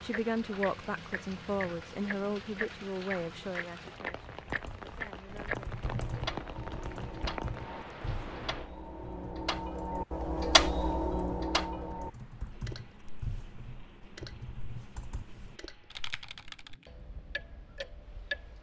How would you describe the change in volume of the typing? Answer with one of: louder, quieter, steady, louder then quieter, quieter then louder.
quieter then louder.